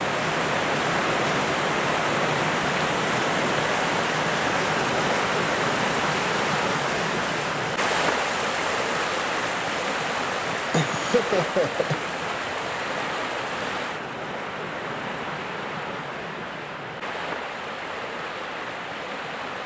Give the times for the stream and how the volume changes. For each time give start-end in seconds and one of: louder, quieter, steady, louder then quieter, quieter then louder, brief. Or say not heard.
0.0-19.6 quieter.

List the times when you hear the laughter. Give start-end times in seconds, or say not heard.
10.7-12.0.